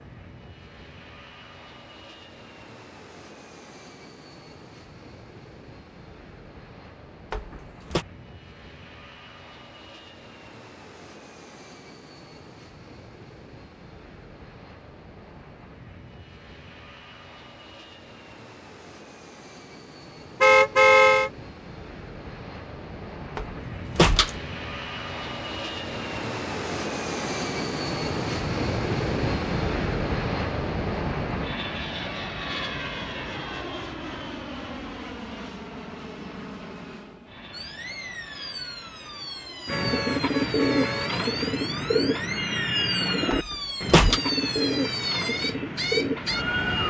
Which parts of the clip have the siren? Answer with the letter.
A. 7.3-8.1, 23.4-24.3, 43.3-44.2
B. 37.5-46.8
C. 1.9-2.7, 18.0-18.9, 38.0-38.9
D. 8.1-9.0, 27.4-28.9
B.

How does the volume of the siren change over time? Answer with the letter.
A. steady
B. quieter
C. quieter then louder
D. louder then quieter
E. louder
E.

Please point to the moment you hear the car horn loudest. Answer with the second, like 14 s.
21 s.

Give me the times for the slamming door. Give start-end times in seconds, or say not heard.
7.3-8.1, 23.4-24.3, 43.3-44.2.